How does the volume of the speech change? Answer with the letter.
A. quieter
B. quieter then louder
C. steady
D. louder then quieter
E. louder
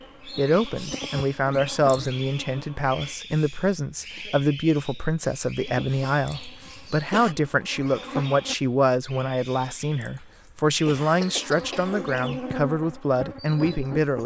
C.